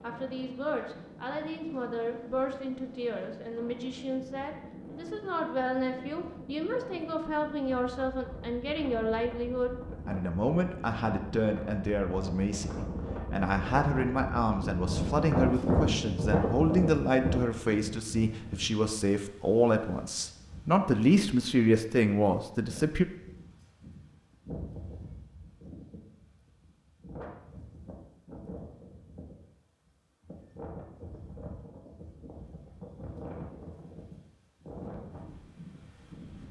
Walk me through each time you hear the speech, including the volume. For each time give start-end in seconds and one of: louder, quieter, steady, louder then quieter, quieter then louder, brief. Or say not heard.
0.0-23.1 louder.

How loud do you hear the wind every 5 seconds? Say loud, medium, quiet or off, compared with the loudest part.
quiet, quiet, medium, loud, quiet, quiet, quiet, quiet.